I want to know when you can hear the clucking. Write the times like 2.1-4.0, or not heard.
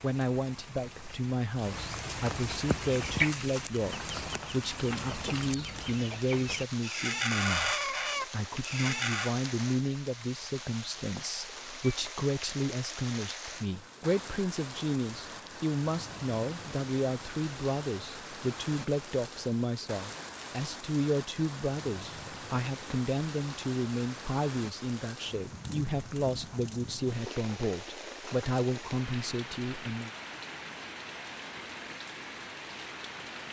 2.9-9.3.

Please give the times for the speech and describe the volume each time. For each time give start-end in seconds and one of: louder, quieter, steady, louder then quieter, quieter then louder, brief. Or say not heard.
0.0-30.1 steady.